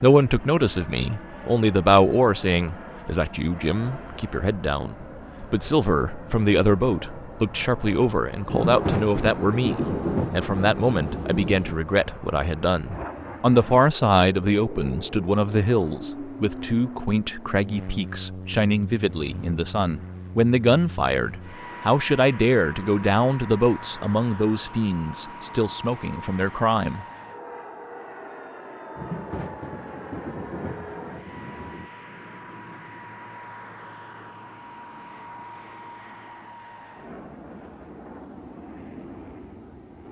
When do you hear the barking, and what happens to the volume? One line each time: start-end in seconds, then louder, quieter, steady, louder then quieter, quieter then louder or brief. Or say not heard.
not heard.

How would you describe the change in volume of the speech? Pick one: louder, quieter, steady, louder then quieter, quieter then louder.
steady.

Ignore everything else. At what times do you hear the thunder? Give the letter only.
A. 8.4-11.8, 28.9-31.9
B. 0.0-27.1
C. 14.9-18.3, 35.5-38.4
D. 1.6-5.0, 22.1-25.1
A.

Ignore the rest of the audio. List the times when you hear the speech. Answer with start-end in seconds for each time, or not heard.
0.0-27.1.